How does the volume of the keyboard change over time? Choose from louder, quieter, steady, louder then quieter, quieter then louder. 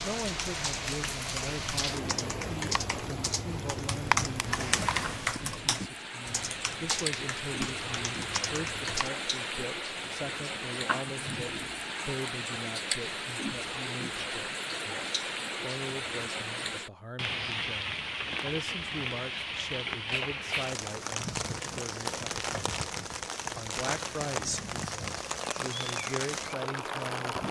louder then quieter.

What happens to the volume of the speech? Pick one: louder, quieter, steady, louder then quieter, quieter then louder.
steady.